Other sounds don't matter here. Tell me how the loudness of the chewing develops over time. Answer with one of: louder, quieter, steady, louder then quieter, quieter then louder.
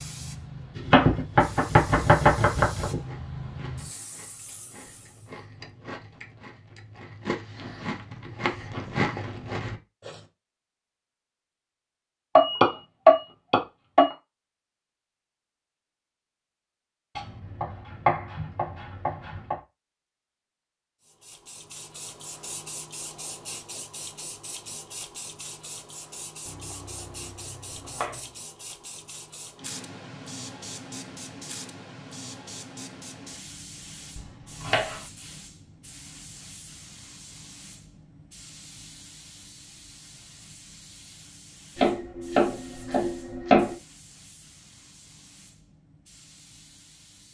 louder.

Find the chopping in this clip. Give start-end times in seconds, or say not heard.
0.8-3.0, 12.3-14.2, 17.1-19.6, 26.4-28.2, 34.1-35.0, 41.8-43.8.